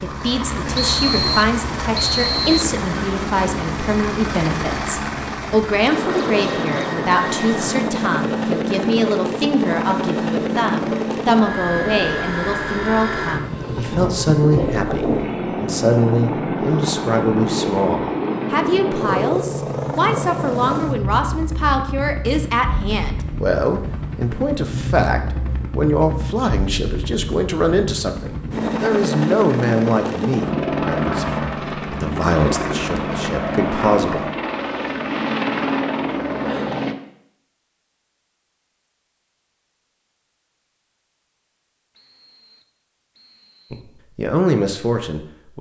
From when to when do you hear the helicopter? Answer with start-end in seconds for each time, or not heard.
0.0-37.0.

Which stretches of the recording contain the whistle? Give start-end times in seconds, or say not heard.
0.9-2.6, 42.0-43.8.